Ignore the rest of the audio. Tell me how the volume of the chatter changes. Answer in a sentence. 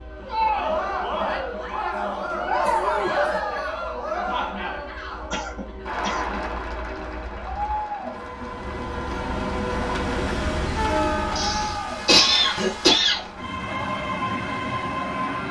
The loudness of the chatter goes down.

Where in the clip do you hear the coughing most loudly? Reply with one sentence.
The loudest moment of the coughing is at 12 seconds.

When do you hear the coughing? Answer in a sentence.
You can hear the coughing from 1.9 to 3.4 s, from 5.3 to 6.5 s and from 11.3 to 13.2 s.